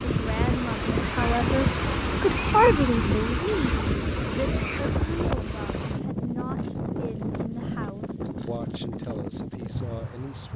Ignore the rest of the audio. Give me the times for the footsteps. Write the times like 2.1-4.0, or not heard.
not heard.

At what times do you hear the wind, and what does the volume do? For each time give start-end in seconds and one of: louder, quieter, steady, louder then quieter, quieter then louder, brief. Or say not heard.
0.0-10.5 quieter.